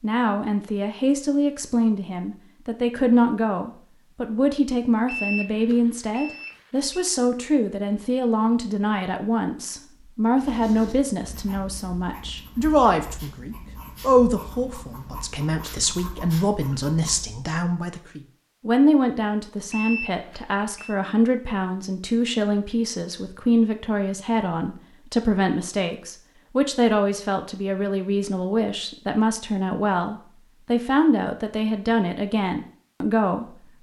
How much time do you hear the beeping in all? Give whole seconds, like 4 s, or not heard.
3 s.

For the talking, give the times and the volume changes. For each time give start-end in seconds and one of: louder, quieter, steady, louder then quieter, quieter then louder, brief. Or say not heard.
0.0-33.7 steady.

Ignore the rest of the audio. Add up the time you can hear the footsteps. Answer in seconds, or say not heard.
not heard.